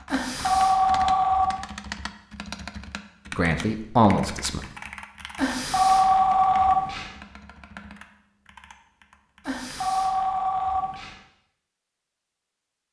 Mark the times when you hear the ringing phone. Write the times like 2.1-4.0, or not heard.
0.1-1.6, 5.3-7.0, 9.4-11.2.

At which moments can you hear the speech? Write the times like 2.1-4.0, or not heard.
3.3-4.7.